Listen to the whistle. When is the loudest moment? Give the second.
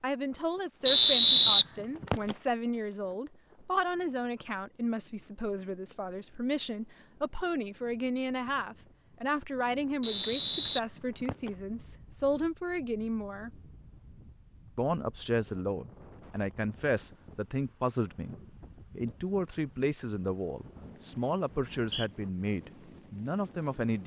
1 s.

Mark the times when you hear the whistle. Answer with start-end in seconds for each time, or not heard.
0.8-2.4, 10.0-11.5, 21.7-22.1.